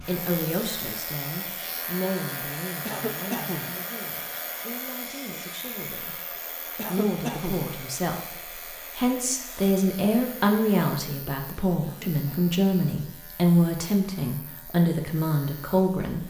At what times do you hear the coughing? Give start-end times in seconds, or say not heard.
2.9-3.8, 6.8-7.7, 11.8-12.5.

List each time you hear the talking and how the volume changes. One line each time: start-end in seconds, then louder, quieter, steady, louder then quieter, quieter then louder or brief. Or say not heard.
0.0-16.2 quieter then louder.